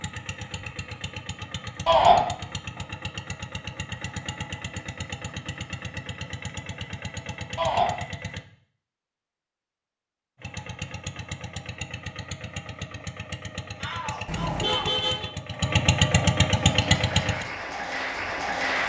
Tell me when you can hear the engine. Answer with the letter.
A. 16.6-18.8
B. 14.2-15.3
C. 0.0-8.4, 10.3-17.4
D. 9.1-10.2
C.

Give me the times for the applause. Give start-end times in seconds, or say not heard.
16.6-18.8.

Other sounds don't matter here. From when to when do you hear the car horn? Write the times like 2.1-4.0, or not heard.
14.2-15.3.